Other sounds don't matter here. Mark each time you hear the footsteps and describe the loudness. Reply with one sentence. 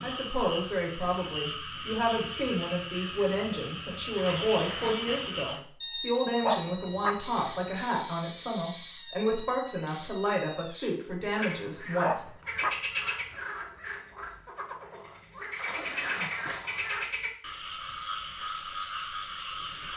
You can't hear the footsteps here.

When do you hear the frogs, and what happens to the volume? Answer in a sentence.
You can hear the frogs from 0.0 to 19.9 s, at a steady volume.